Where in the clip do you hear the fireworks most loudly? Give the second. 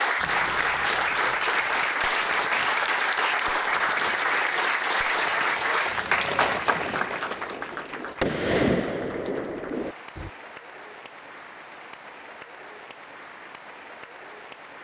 9 s.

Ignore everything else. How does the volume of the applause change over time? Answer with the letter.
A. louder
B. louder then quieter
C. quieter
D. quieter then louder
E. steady
C.